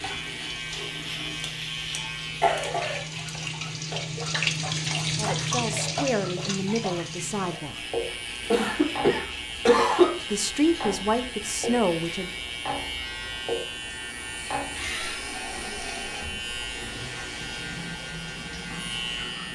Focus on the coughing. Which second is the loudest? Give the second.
10 s.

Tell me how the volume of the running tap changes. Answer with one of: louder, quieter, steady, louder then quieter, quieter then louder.
louder then quieter.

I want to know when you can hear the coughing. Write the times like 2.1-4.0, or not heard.
1.4-3.4, 8.5-10.2, 14.8-15.3.